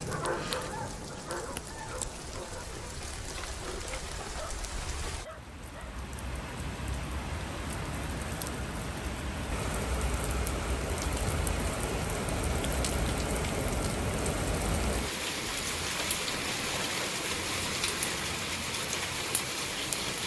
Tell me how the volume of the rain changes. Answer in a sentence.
The loudness of the rain goes up.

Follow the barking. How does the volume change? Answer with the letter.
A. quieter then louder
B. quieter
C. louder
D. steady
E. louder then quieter
B.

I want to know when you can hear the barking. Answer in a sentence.
You can hear the barking from 0.0 to 6.0 s.